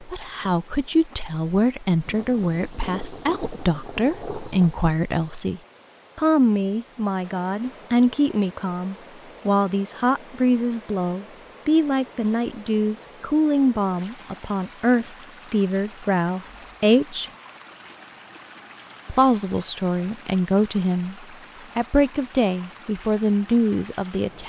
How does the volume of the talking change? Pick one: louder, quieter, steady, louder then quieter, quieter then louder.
steady.